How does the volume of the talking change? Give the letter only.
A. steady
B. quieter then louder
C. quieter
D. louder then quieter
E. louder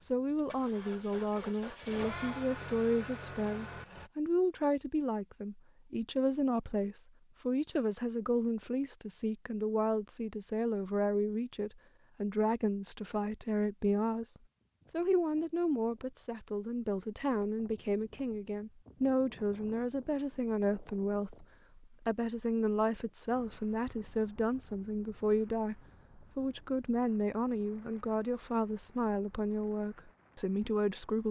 A.